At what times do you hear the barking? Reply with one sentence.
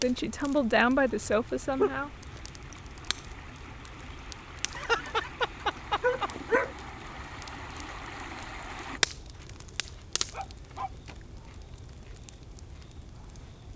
You can hear the barking from 1.4 to 2.4 s, from 4.8 to 6.8 s and from 9.3 to 10.9 s.